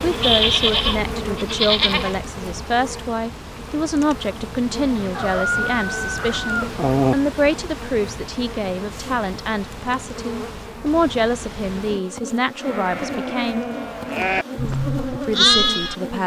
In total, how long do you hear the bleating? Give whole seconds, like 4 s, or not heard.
6 s.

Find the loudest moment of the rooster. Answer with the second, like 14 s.
7 s.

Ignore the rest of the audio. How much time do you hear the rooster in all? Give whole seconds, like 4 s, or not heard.
2 s.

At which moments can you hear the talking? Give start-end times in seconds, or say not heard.
0.0-13.7, 15.2-16.2.